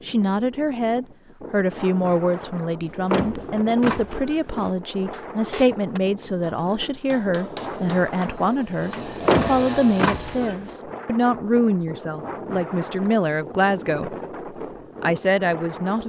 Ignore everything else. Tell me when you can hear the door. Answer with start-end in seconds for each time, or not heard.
2.9-4.7, 9.1-10.8.